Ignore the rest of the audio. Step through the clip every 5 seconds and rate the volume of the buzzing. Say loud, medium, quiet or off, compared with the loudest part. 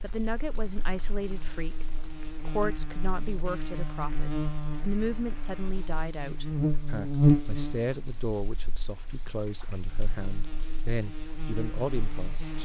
medium, loud, quiet.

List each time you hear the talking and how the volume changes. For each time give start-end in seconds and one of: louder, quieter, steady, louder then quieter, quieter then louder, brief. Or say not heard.
0.0-12.6 steady.